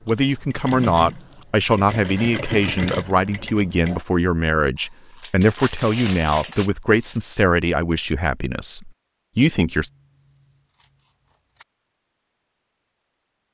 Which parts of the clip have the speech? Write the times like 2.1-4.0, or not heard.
0.1-9.9.